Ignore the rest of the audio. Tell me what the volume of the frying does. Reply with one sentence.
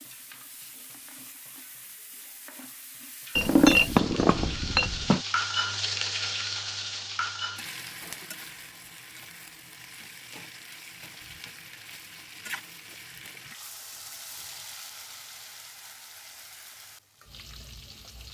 The loudness of the frying goes up, then down.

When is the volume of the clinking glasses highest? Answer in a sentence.
The volume of the clinking glasses peaks at 4 seconds.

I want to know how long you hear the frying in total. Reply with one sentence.
You can hear the frying for 18 seconds altogether.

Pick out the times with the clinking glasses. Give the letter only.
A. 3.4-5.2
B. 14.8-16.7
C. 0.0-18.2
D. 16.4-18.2
A.